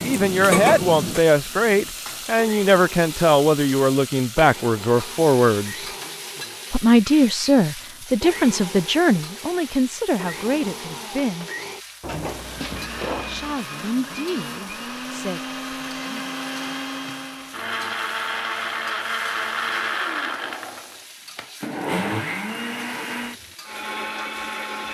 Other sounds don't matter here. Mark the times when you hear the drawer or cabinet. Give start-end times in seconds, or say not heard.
12.0-13.6.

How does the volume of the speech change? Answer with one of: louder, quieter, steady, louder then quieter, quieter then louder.
quieter.